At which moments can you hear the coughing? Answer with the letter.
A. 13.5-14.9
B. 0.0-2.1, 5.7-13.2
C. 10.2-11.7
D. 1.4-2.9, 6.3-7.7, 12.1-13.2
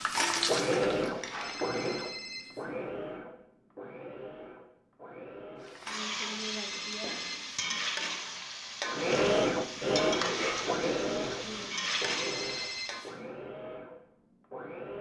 C.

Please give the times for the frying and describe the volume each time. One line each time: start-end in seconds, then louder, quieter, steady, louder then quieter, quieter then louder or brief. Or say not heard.
0.0-2.1 brief
5.7-13.2 steady.